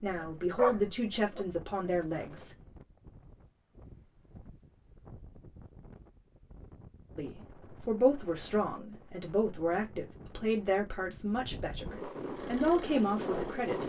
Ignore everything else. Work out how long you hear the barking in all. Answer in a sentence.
The barking can be heard for 2 seconds in total.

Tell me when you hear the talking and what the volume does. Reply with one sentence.
You can hear the talking briefly from 0.0 to 2.5 s; and from 7.2 to 13.8 s, getting quieter then louder.